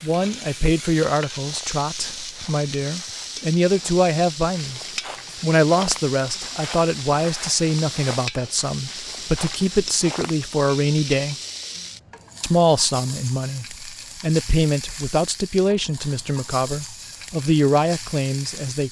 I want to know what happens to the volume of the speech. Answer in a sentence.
The volume of the speech stays about the same.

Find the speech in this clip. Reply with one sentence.
You can hear the speech from 0.0 to 4.8 s, from 5.4 to 11.3 s and from 12.4 to 18.8 s.